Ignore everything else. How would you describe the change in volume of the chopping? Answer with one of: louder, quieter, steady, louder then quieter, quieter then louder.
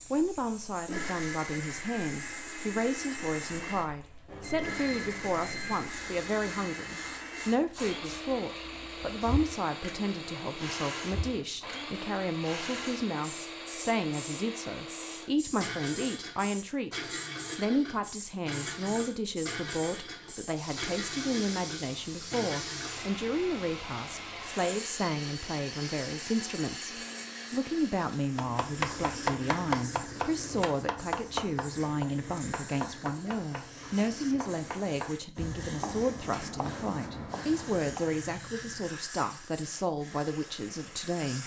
quieter.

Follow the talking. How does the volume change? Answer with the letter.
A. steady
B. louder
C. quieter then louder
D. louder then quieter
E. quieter
A.